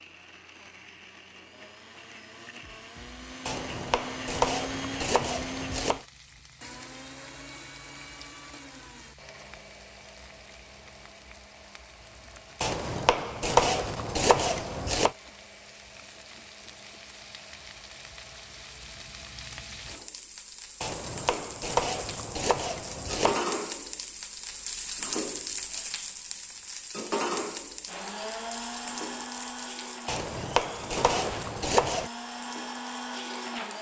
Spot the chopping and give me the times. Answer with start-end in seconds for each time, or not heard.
3.5-6.0, 12.6-15.1, 20.8-23.4, 30.1-32.1.